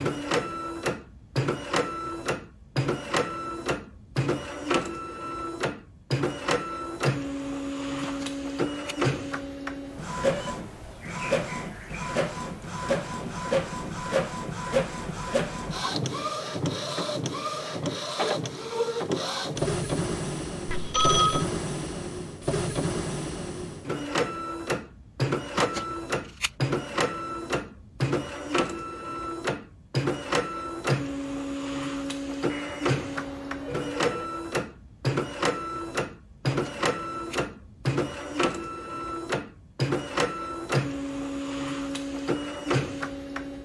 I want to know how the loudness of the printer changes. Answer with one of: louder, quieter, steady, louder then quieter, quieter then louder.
steady.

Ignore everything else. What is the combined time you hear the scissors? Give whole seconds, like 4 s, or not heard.
3 s.